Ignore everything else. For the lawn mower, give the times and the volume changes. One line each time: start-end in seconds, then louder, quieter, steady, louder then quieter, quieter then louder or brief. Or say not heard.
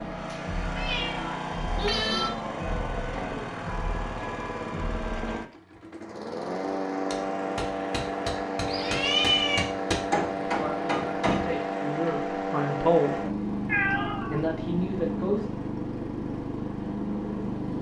0.0-17.7 steady.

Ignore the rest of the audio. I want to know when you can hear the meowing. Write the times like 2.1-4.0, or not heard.
0.3-2.3, 8.7-9.7, 13.7-14.4.